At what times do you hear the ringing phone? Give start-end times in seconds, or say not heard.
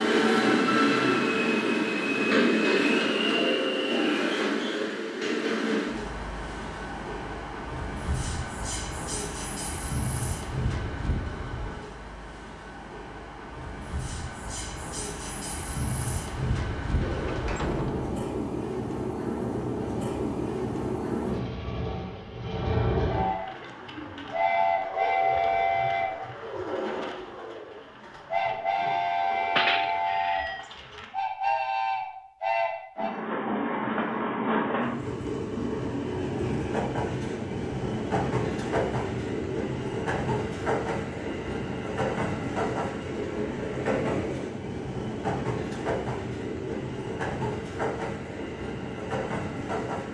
29.6-30.6.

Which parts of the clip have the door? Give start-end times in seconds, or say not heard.
17.0-18.2.